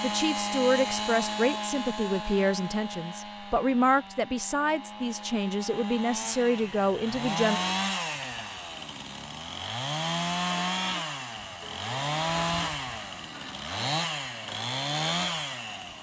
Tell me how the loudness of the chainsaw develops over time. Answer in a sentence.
The volume of the chainsaw goes down, then up.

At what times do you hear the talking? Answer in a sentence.
The talking can be heard from 0.0 to 7.6 s.